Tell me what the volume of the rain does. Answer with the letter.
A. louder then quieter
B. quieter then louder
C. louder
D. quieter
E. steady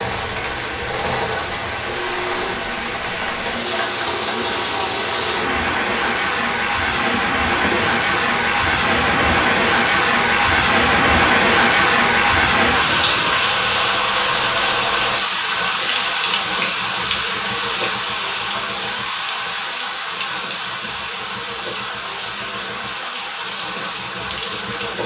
A.